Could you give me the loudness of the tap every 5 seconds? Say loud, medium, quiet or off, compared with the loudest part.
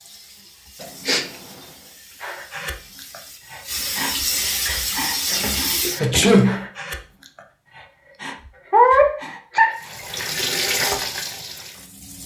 medium, loud, loud.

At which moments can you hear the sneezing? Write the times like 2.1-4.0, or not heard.
0.8-1.2, 6.0-6.7, 8.7-9.8.